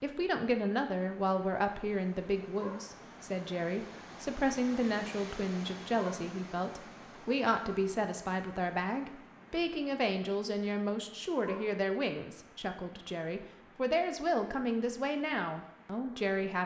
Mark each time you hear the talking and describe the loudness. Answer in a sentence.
The talking can be heard from 0.0 to 16.6 s, at a steady volume.